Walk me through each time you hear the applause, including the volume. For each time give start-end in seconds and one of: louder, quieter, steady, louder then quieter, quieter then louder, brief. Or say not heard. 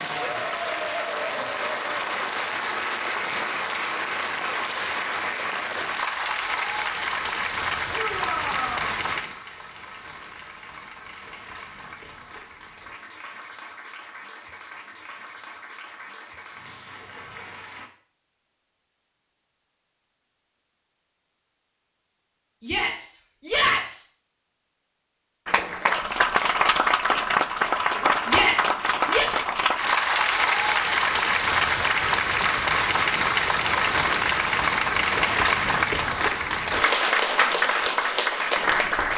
0.0-17.9 quieter
25.4-39.1 steady.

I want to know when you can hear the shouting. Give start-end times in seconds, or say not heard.
7.9-8.9, 22.6-24.1, 28.2-29.3.